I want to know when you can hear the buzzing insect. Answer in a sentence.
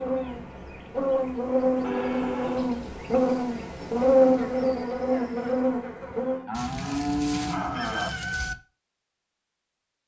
The buzzing insect can be heard from 0.0 to 6.5 s.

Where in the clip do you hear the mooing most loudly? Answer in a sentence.
The volume of the mooing peaks at 7 seconds.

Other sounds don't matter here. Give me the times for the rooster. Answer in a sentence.
You can hear the rooster from 6.5 to 8.6 s.